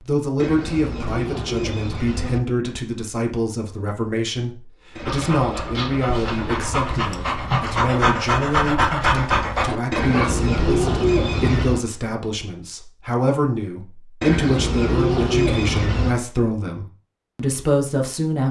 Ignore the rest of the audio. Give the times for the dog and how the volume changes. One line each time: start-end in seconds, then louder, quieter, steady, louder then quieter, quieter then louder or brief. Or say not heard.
5.0-10.3 louder.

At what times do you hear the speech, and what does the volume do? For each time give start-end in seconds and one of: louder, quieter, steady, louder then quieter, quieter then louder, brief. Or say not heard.
0.0-18.4 steady.